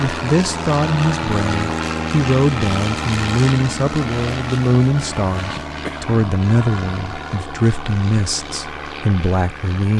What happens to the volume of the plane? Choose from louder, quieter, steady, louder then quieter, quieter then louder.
quieter.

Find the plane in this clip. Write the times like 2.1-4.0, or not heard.
0.0-9.9.